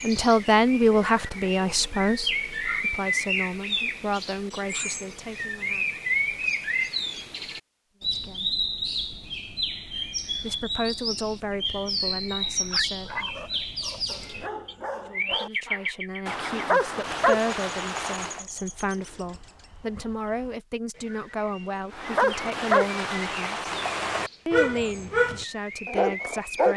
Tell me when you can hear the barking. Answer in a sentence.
The barking can be heard from 12.3 to 18.4 s and from 21.9 to 26.7 s.